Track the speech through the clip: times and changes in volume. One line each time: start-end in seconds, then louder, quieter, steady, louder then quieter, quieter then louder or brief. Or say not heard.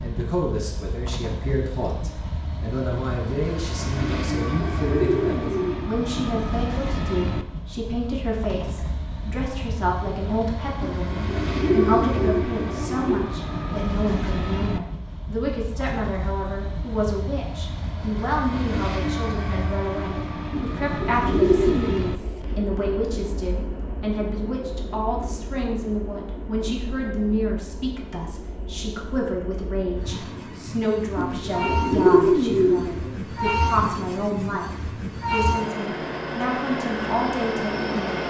0.0-34.7 steady
35.3-38.2 brief.